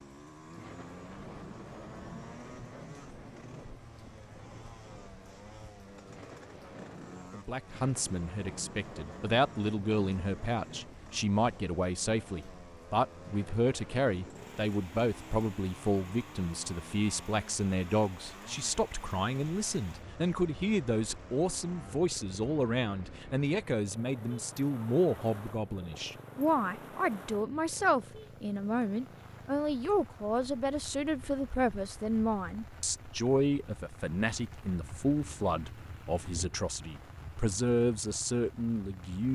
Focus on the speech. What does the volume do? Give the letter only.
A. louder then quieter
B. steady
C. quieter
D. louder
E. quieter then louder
B.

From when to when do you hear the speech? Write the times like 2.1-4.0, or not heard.
7.3-39.3.